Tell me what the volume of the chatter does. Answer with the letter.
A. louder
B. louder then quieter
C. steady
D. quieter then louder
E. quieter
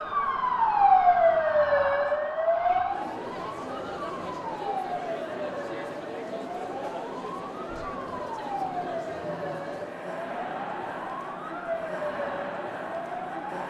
A.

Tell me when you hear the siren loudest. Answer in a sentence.
The volume of the siren peaks at 1 second.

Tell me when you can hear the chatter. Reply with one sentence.
You can hear the chatter from 0.0 to 13.6 s.